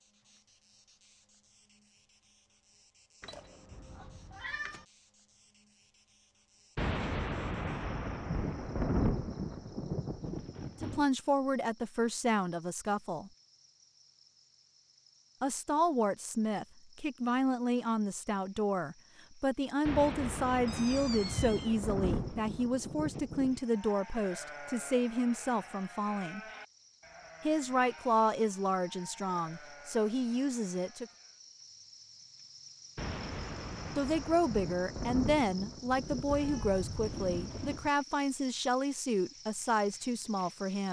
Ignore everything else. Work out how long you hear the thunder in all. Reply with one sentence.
The thunder can be heard for 13 seconds in total.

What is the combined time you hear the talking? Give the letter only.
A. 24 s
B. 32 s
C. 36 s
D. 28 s
A.